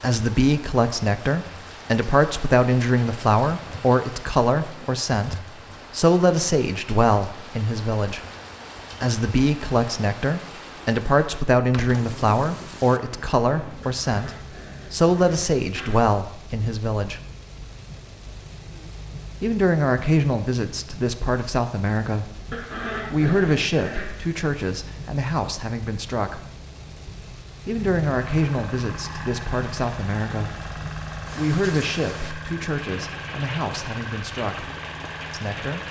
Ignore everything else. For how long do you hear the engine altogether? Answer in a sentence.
The engine can be heard for 8 seconds in total.